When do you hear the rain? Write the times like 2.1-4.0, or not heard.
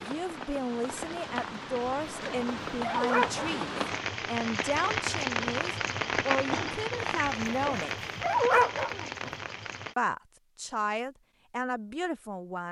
0.0-9.9.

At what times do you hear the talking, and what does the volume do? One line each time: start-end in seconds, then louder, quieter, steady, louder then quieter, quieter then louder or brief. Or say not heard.
0.0-8.0 steady
9.9-12.6 brief.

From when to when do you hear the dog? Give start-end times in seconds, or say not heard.
2.1-3.6, 7.2-9.3.